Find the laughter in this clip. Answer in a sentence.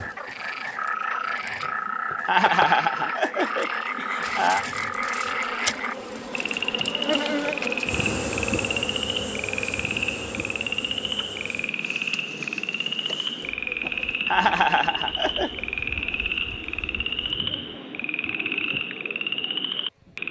The laughter can be heard from 2.2 to 4.7 s and from 14.2 to 15.6 s.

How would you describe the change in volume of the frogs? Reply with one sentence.
The volume of the frogs stays about the same.